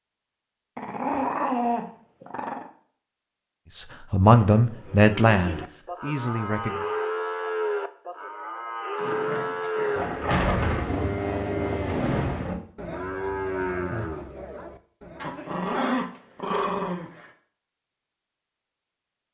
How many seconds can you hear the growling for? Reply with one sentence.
The growling can be heard for 5 seconds in total.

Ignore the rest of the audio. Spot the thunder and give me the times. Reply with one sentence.
You can hear the thunder from 9.9 to 12.6 s.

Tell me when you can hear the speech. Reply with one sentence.
The speech can be heard from 3.8 to 6.8 s.